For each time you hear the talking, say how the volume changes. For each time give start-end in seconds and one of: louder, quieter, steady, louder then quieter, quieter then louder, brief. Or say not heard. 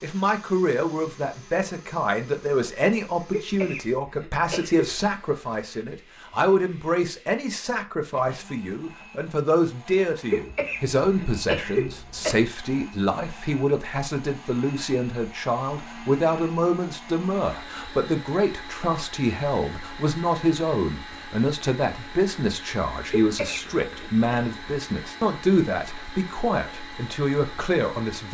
0.0-28.2 steady.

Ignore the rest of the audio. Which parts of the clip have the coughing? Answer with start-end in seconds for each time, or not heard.
3.3-5.0, 10.3-12.3, 23.1-24.1.